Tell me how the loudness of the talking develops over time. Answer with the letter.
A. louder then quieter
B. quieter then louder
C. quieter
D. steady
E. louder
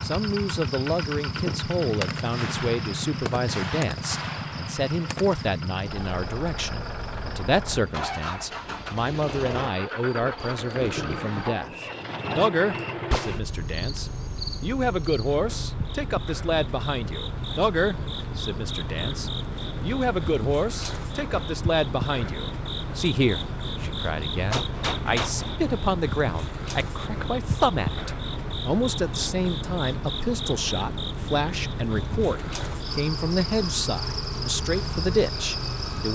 D.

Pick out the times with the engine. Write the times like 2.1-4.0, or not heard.
0.0-36.1.